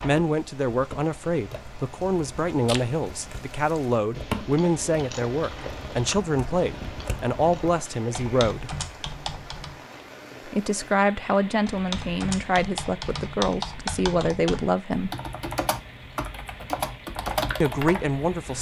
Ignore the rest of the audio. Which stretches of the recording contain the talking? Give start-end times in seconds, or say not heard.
0.0-8.7, 10.4-15.1, 17.6-18.5.